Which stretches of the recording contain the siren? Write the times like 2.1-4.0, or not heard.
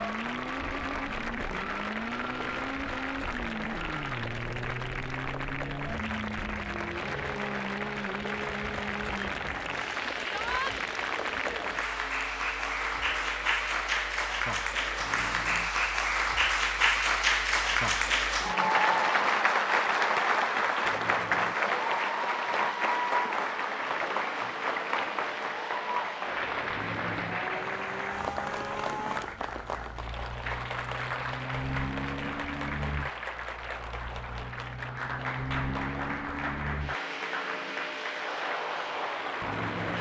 not heard.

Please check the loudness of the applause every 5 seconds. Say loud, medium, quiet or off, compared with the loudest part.
medium, medium, medium, loud, loud, medium, medium, medium.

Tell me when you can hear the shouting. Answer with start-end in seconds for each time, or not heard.
10.2-10.8.